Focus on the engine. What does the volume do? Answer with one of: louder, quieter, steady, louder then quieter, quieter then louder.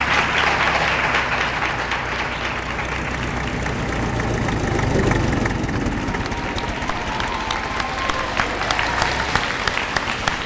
louder then quieter.